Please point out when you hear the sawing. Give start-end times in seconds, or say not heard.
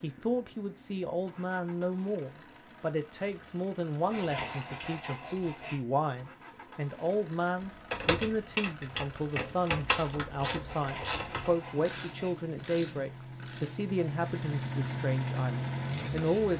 4.0-5.8, 10.7-12.3.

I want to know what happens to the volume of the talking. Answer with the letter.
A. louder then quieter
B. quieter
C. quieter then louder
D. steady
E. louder
D.